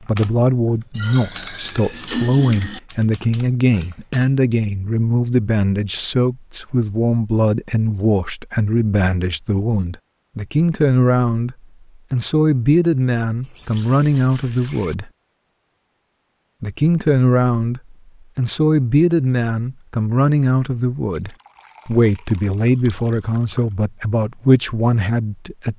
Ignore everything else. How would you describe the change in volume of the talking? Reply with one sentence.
The volume of the talking stays about the same.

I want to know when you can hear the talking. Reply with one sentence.
The talking can be heard from 0.0 to 15.1 s and from 16.6 to 25.7 s.